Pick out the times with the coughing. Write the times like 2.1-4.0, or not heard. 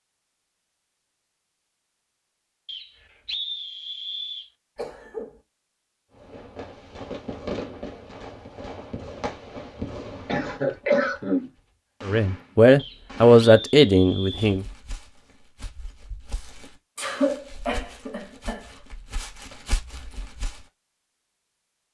4.8-5.3, 10.2-11.5, 16.9-18.7.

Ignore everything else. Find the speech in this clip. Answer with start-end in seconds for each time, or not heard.
12.1-14.7.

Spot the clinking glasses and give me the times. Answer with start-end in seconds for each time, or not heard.
not heard.